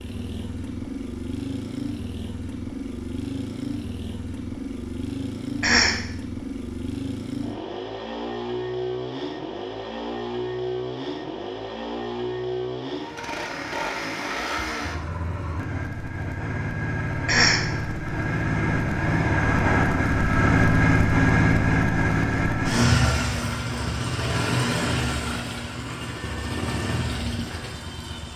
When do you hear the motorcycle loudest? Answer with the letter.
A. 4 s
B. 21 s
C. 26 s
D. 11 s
B.